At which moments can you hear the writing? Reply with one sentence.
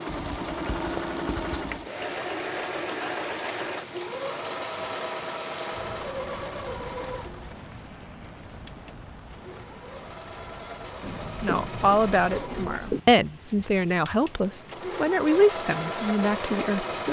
You can hear the writing from 0.1 to 1.9 s and from 11.0 to 13.0 s.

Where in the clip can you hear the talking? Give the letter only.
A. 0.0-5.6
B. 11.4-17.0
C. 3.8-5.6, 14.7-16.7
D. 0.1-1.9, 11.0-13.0
B.